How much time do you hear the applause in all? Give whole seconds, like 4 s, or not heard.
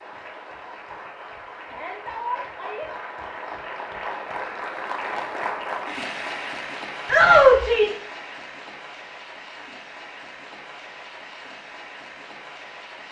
13 s.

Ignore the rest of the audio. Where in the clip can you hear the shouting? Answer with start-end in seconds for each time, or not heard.
1.6-2.9, 7.0-8.0.